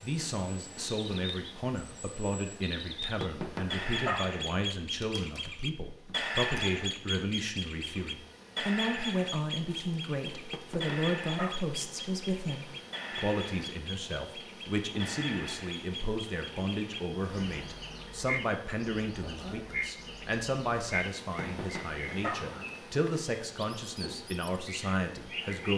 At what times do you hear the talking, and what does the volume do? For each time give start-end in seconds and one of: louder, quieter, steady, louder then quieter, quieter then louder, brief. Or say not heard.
0.0-25.7 steady.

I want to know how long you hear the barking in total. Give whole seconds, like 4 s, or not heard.
3 s.